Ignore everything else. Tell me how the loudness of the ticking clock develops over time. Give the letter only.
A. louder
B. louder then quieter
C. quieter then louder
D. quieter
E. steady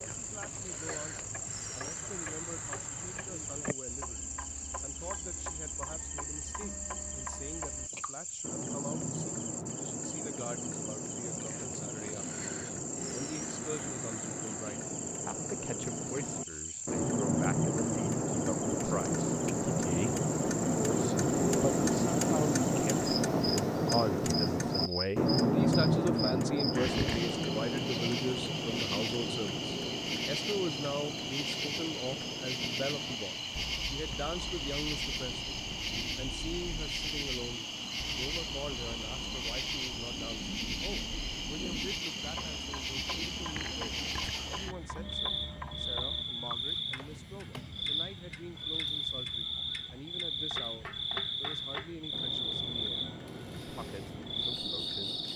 B.